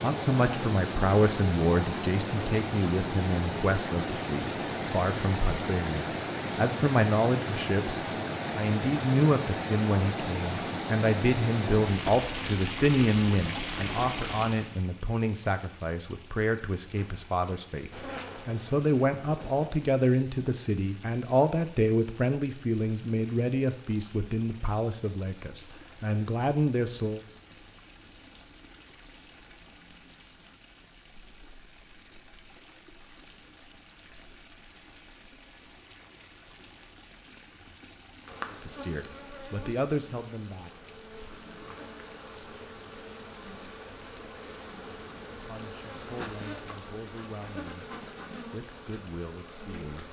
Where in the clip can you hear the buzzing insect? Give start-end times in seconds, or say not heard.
17.9-19.7, 38.2-50.0.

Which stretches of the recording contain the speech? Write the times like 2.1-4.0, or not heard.
0.0-27.2, 38.5-40.7, 45.3-50.0.